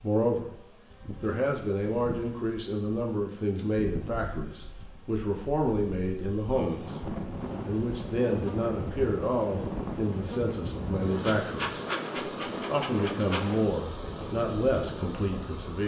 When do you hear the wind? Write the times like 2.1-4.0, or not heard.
6.7-15.7.